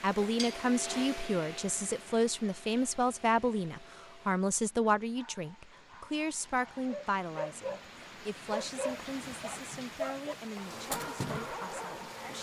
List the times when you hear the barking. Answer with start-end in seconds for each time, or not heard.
5.0-7.8, 8.5-12.3.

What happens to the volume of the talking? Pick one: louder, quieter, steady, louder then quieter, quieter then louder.
quieter.